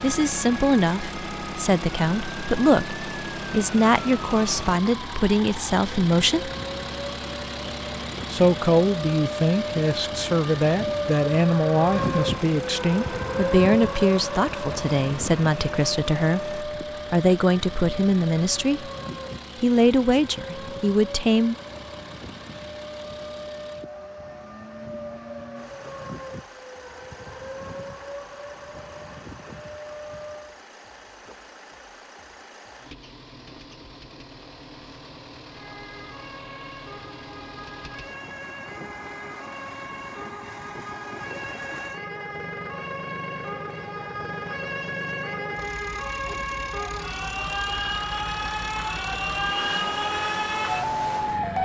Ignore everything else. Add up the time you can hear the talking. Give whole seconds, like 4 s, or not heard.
19 s.